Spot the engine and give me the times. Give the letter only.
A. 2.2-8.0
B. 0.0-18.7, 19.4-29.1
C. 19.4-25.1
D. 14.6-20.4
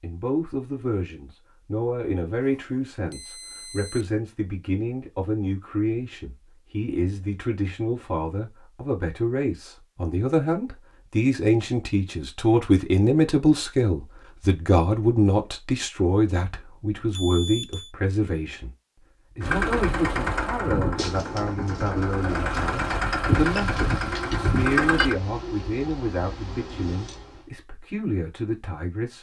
C.